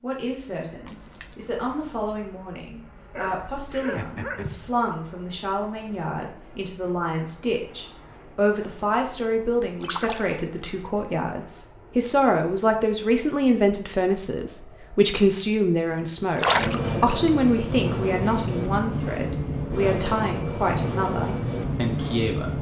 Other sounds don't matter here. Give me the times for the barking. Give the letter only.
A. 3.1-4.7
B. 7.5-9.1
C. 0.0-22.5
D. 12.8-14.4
A.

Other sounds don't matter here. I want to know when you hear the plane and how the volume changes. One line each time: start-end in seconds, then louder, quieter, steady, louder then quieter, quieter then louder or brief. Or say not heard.
0.2-22.5 louder.